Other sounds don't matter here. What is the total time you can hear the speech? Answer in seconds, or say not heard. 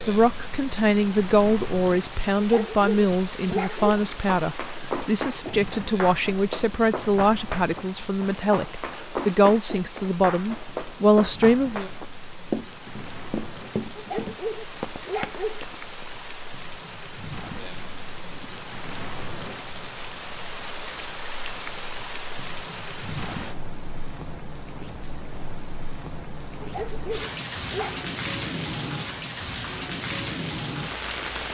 12 s.